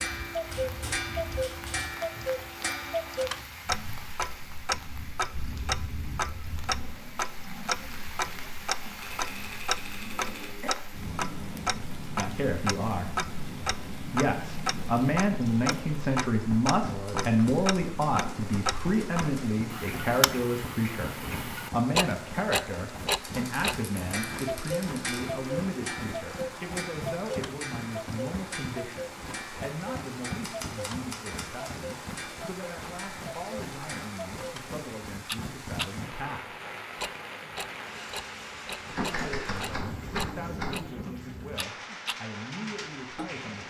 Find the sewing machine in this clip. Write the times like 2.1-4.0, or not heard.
not heard.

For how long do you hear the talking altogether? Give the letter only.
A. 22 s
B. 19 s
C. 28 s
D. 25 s
C.